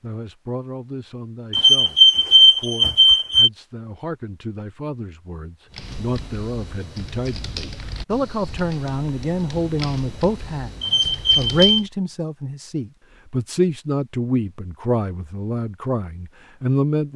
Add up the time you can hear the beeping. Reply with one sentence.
The beeping can be heard for 3 seconds in total.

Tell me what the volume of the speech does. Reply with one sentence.
The loudness of the speech goes up.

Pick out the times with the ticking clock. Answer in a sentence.
You can't hear the ticking clock here.